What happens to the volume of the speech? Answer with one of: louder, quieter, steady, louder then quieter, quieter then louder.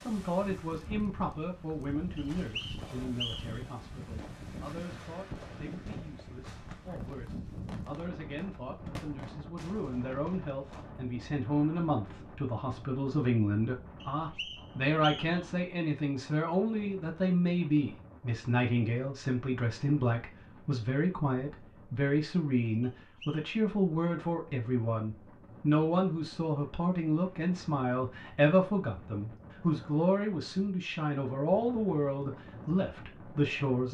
louder.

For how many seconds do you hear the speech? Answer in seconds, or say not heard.
34 s.